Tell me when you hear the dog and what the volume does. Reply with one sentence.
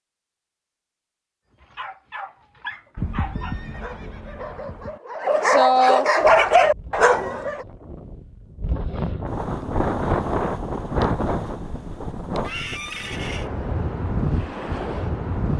You can hear the dog from 1.6 to 7.7 s, getting louder.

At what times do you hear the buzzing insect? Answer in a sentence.
The buzzing insect can't be heard in this clip.